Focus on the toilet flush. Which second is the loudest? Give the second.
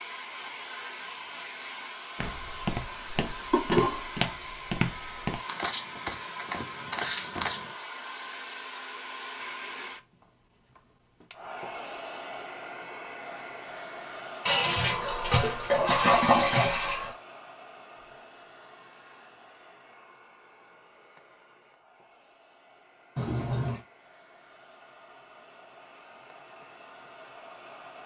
16 s.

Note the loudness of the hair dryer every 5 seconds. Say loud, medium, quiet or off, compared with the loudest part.
loud, loud, loud, medium, quiet, medium.